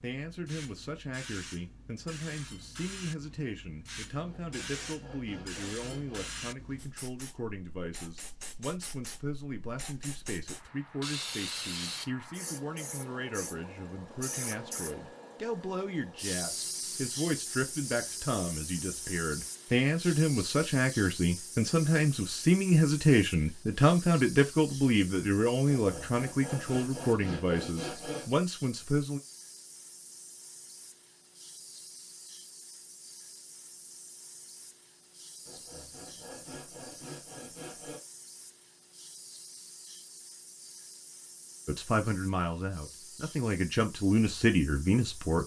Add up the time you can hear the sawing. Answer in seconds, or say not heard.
7 s.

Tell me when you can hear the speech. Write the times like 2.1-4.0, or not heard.
0.0-29.2, 41.6-45.4.